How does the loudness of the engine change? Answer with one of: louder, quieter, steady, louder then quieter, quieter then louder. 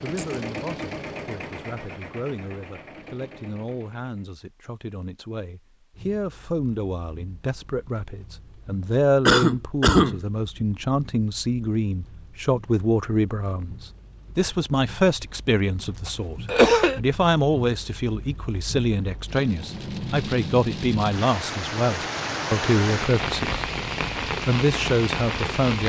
quieter.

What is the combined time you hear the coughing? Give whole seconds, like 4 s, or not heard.
2 s.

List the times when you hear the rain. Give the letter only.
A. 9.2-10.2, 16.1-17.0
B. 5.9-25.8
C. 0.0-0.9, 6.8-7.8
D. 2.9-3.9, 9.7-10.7
B.